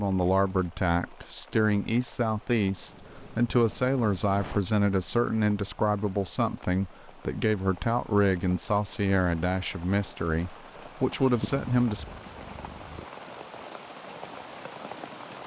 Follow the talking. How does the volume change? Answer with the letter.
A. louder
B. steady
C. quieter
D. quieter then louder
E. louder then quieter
B.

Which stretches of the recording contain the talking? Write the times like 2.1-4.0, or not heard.
0.0-12.1.